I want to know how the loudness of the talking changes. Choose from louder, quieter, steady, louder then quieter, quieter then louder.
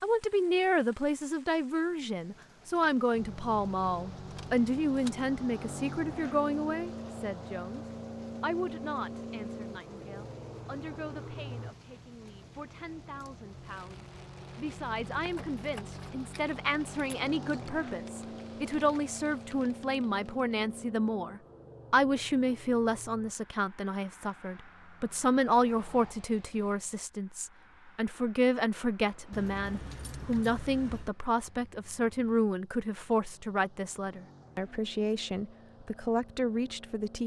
quieter then louder.